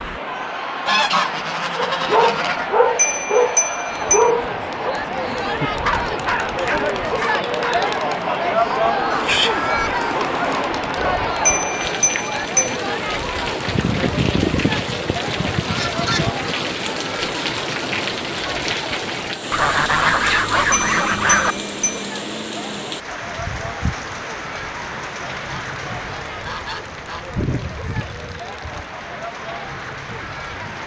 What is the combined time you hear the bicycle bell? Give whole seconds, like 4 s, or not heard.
4 s.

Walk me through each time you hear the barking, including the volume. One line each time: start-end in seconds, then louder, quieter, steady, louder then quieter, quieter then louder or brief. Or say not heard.
1.8-7.8 quieter.